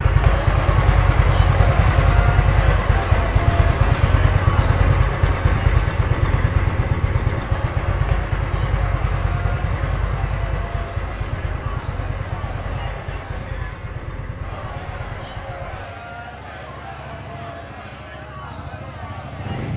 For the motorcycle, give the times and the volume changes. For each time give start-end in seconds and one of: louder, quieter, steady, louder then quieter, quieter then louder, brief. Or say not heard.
0.0-19.7 quieter.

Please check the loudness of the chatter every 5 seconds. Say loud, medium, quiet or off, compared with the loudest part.
loud, medium, medium, medium.